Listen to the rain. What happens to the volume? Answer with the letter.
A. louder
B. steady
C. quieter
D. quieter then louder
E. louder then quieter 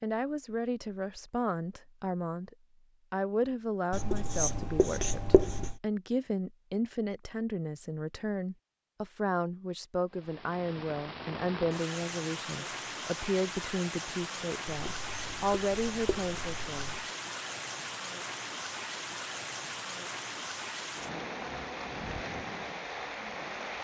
B.